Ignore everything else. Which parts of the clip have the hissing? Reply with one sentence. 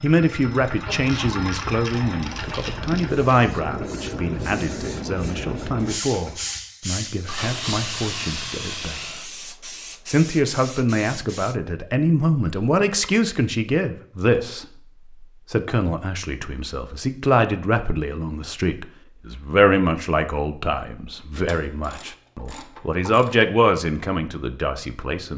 You can hear the hissing from 2.1 to 11.6 s.